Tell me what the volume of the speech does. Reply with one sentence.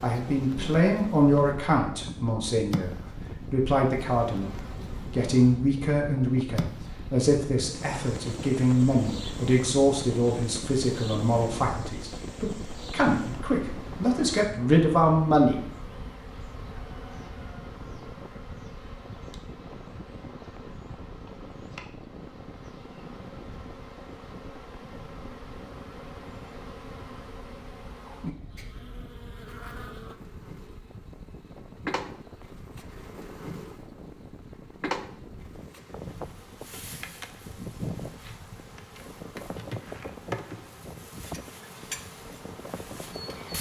The volume of the speech stays about the same.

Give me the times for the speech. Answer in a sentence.
The speech can be heard from 0.0 to 15.6 s.